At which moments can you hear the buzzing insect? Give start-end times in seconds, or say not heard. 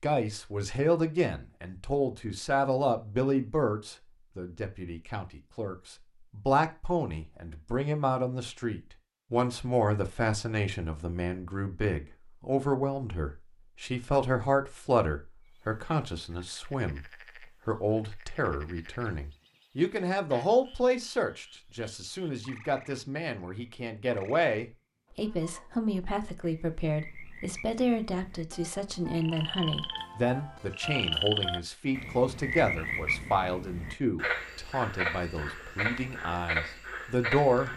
not heard.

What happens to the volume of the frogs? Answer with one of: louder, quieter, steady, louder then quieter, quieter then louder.
louder.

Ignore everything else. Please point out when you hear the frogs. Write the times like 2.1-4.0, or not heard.
15.4-37.7.